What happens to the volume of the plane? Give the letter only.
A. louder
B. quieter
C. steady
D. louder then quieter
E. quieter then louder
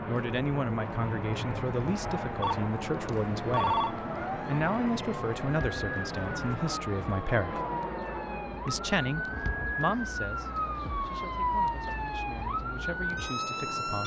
B.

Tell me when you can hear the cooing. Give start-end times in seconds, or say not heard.
not heard.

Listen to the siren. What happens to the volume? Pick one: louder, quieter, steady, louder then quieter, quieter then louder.
louder.